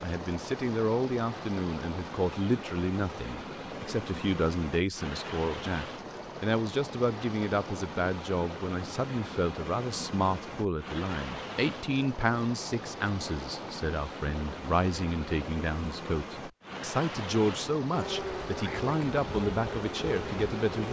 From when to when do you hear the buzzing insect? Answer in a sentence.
The buzzing insect can be heard from 17.9 to 20.8 s.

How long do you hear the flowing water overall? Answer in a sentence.
You can hear the flowing water for 21 seconds altogether.